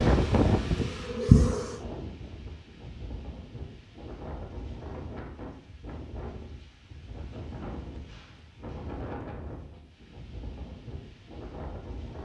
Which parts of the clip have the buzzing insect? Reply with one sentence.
The buzzing insect can be heard from 0.1 to 1.8 s.